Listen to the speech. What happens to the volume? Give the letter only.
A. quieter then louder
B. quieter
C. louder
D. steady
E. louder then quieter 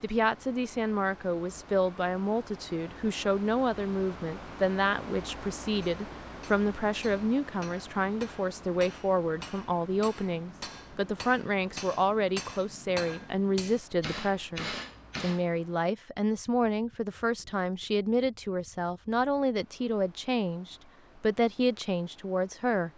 D.